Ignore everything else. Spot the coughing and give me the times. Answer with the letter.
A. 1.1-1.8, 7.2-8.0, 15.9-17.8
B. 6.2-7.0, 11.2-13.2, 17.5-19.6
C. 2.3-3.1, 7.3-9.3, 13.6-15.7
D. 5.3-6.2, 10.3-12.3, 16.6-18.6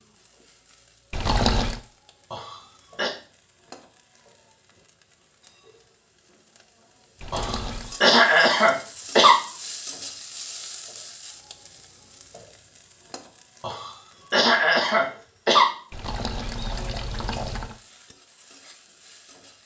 C.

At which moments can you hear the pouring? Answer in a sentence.
You can hear the pouring from 1.1 to 1.8 s, from 7.2 to 8.0 s and from 15.9 to 17.8 s.